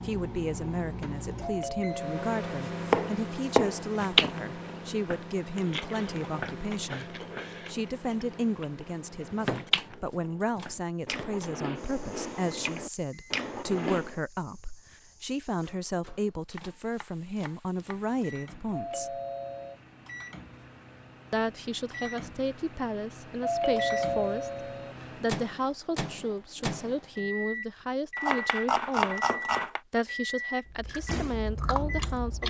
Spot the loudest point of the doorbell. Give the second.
24 s.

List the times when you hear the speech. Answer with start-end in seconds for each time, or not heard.
0.0-19.2, 21.3-29.3, 29.9-32.4.